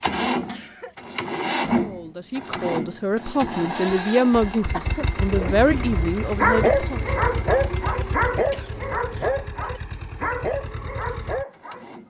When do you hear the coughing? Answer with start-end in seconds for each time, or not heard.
0.3-0.9, 4.7-5.8, 8.5-9.4.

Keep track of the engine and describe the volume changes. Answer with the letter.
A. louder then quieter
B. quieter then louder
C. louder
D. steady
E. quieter
E.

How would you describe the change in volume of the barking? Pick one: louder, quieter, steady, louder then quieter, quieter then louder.
quieter.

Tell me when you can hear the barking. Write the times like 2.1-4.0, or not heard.
5.3-11.8.